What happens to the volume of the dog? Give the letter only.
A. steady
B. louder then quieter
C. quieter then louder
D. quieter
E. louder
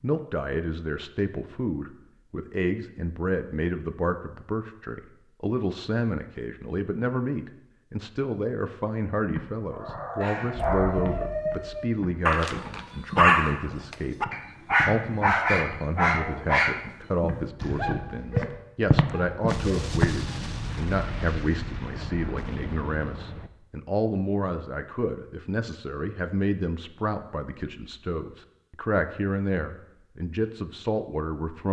B.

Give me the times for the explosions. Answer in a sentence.
The explosions can be heard from 10.6 to 11.8 s and from 19.4 to 23.5 s.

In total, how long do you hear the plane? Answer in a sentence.
The plane can't be heard in this clip.